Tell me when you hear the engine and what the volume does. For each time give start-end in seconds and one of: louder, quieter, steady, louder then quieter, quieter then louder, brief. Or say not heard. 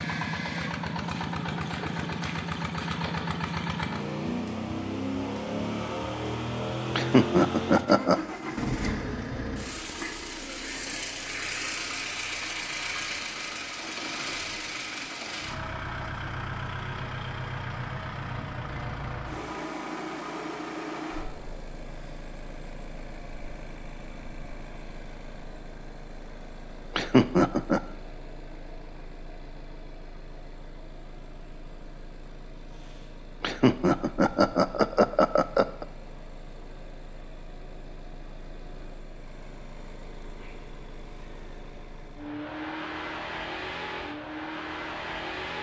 0.0-45.5 quieter then louder.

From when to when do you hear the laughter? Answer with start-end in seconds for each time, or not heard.
7.0-8.2, 26.9-27.8, 33.4-35.9.